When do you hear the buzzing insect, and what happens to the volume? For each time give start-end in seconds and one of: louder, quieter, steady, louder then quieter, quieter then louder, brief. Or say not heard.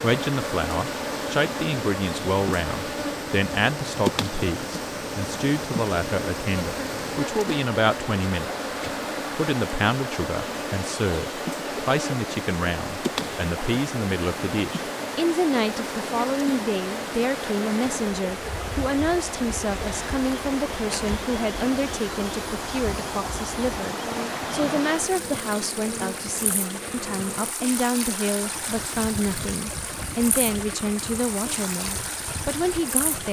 0.0-33.2 quieter.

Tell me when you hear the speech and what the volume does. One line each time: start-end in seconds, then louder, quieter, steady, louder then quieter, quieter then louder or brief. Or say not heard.
0.0-8.7 steady
9.3-33.2 steady.